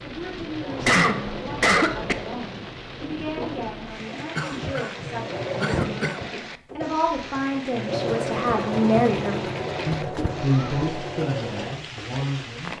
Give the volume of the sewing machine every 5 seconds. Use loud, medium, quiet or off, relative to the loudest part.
medium, loud, loud.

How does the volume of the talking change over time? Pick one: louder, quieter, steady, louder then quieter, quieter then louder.
louder then quieter.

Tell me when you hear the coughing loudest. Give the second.
1 s.